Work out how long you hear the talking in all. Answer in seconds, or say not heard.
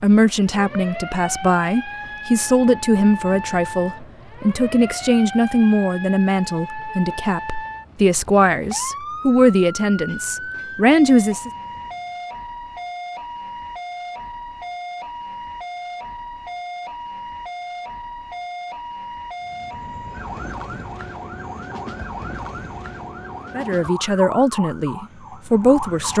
14 s.